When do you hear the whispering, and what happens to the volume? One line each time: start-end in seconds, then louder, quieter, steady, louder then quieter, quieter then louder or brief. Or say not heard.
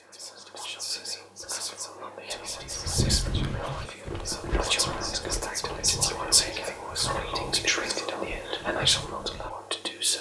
0.0-10.1 louder.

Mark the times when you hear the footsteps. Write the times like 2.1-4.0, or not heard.
2.5-9.6.